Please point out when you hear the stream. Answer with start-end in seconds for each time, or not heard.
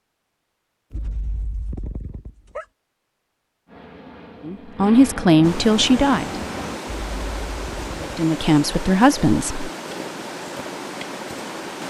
5.4-11.8.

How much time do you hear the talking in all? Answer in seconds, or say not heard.
4 s.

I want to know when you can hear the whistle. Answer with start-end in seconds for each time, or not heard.
not heard.